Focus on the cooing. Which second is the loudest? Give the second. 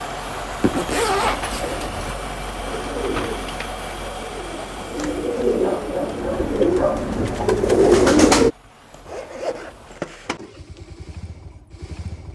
8 s.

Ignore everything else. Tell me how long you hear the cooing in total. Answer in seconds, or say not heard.
7 s.